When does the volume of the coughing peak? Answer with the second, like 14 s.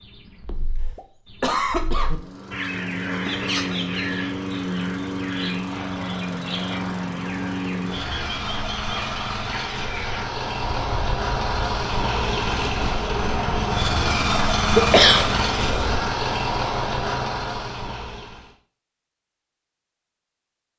15 s.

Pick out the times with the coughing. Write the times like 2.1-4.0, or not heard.
0.5-2.1, 14.6-16.0.